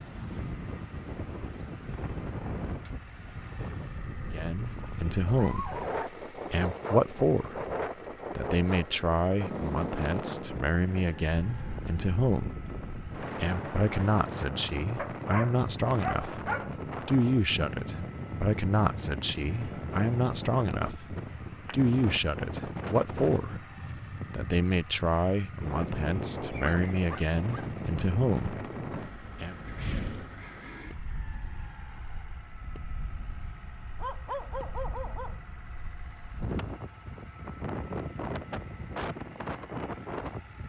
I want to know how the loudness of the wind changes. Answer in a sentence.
The loudness of the wind stays about the same.